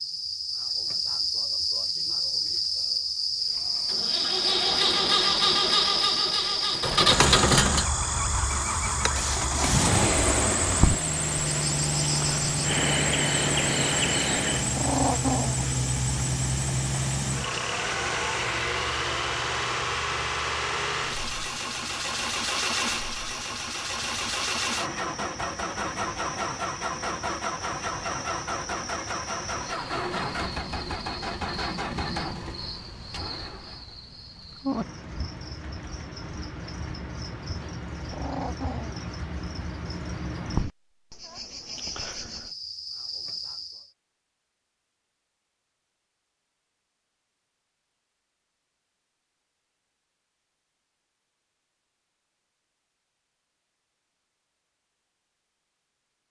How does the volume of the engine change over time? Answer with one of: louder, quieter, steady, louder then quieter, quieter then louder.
quieter.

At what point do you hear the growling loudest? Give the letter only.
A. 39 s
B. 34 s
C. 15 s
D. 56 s
C.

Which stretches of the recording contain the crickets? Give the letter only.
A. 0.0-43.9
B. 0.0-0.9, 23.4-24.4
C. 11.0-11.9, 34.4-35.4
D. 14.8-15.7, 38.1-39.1
A.